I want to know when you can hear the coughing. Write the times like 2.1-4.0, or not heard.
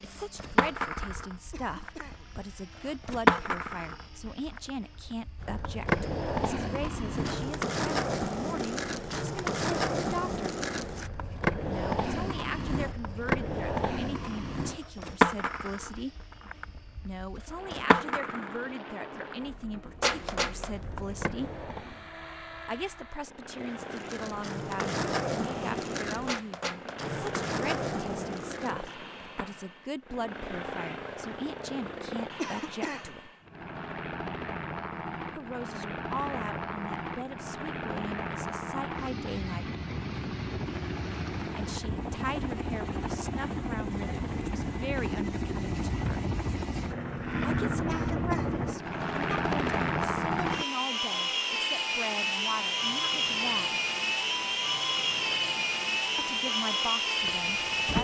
1.5-2.3, 32.4-33.1, 47.9-48.5.